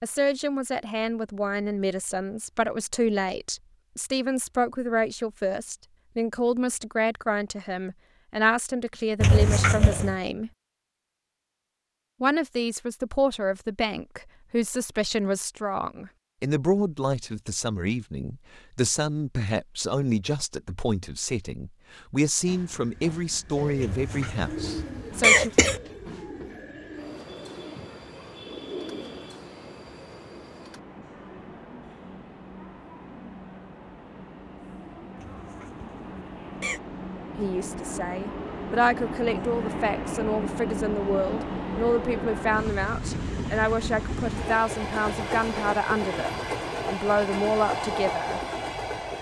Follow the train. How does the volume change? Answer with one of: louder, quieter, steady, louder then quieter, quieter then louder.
louder.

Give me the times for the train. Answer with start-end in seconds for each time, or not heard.
22.4-49.1.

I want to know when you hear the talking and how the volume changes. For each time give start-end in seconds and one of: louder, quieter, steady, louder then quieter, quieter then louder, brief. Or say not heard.
0.0-10.5 steady
12.2-25.5 steady
37.4-48.4 steady.